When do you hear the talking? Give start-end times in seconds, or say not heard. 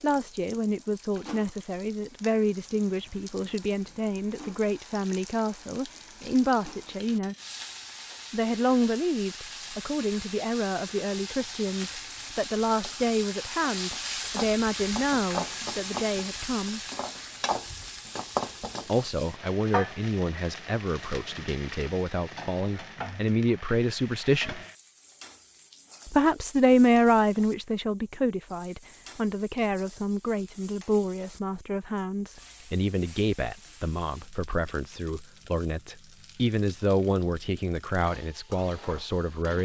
0.0-7.3, 8.3-16.8, 18.9-24.6, 26.1-39.6.